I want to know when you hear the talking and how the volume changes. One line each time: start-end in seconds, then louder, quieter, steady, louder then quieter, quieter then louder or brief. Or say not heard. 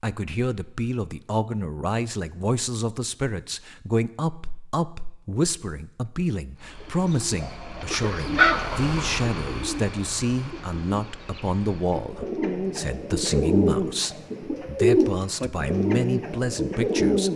0.0-17.3 steady.